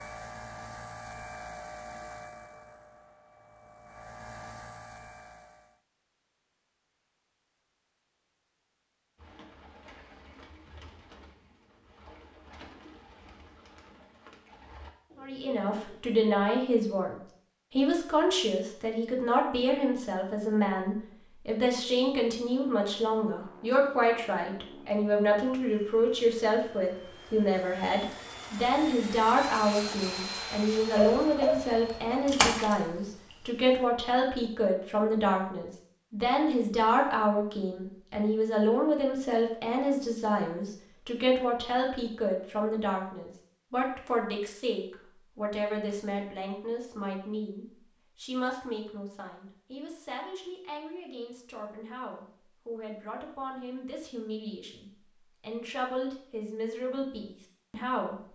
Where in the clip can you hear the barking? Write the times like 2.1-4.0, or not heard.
30.9-32.1.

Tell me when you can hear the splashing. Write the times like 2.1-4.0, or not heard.
32.2-33.4.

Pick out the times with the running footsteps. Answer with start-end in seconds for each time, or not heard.
not heard.